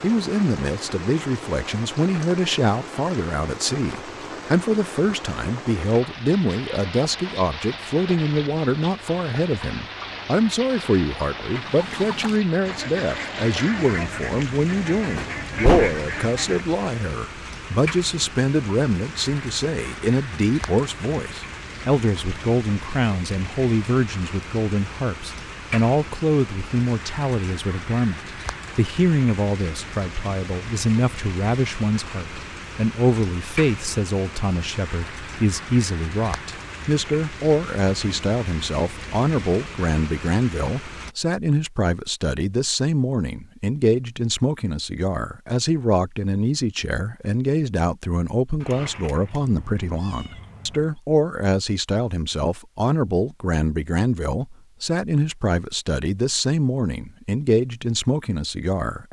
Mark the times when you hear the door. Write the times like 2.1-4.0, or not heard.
15.2-16.0.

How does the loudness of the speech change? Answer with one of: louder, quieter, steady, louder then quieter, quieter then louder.
steady.